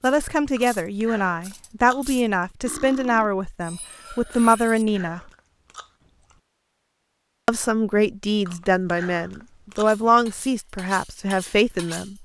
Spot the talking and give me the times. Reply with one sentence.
You can hear the talking from 0.0 to 5.2 s and from 7.5 to 12.2 s.